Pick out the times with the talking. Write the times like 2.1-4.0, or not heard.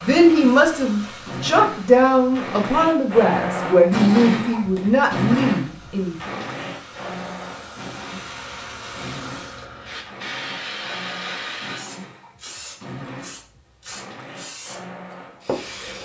0.0-6.3.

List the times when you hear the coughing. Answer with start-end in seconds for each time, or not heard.
not heard.